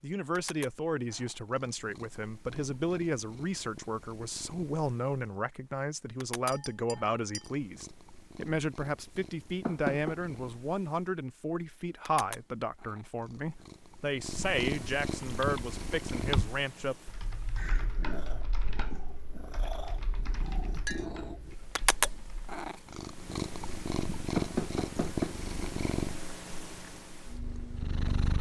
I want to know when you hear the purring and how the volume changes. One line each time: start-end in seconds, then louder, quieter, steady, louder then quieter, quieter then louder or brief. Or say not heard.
0.3-28.3 louder.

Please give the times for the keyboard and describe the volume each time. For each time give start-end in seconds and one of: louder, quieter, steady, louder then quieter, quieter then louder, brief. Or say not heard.
15.2-22.6 quieter.